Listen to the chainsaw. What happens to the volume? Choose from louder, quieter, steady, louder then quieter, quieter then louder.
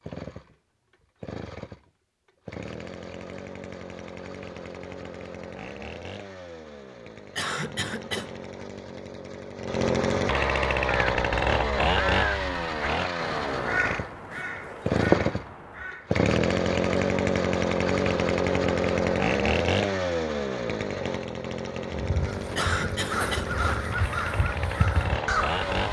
louder then quieter.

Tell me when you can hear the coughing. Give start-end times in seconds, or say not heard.
7.3-8.3, 22.6-23.6.